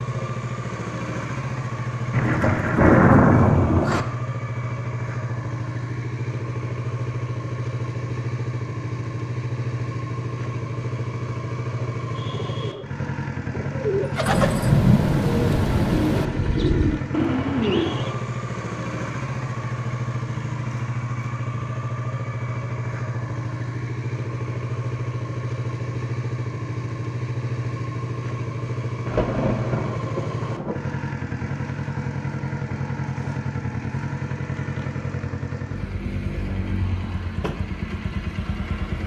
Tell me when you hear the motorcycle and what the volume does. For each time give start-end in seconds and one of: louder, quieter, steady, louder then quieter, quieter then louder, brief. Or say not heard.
0.0-39.0 steady.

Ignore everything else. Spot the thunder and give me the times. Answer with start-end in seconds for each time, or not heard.
2.1-4.0, 14.2-16.2, 29.1-30.8.